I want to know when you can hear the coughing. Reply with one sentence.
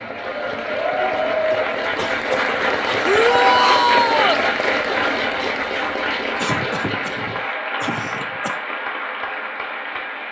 You can hear the coughing from 1.5 to 3.1 s and from 6.3 to 8.6 s.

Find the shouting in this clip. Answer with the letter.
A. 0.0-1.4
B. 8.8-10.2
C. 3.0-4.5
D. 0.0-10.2
C.